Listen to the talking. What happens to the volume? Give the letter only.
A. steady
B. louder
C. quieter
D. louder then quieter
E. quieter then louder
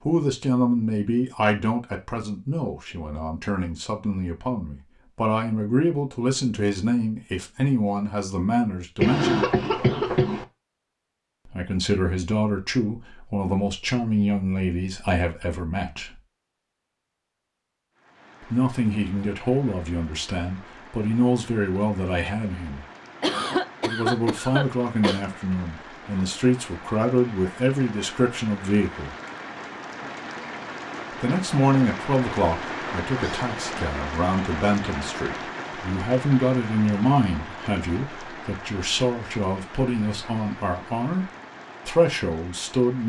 A.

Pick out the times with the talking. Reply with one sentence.
The talking can be heard from 0.1 to 9.4 s, from 11.4 to 16.2 s, from 18.4 to 22.9 s, from 23.9 to 29.1 s and from 31.2 to 43.0 s.